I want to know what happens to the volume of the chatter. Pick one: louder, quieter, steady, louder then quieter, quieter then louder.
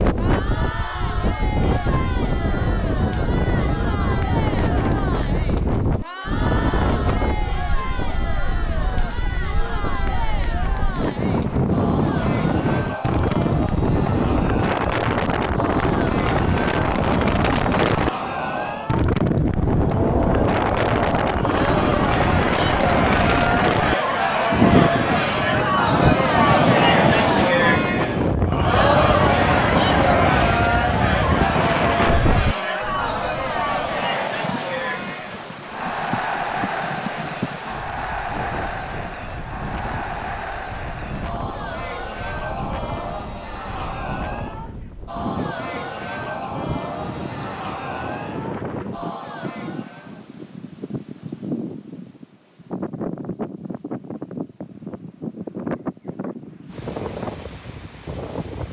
louder then quieter.